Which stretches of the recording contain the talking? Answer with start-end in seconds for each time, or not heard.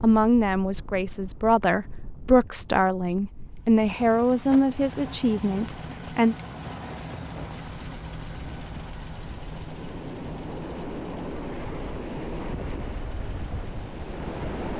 0.0-6.3.